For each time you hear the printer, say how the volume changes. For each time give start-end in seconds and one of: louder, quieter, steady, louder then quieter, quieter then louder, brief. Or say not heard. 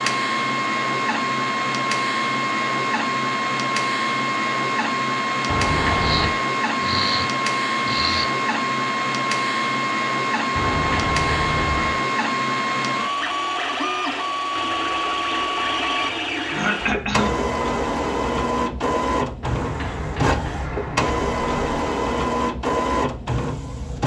0.0-24.0 steady.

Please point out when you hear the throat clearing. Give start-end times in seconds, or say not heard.
6.0-8.3, 16.5-17.4.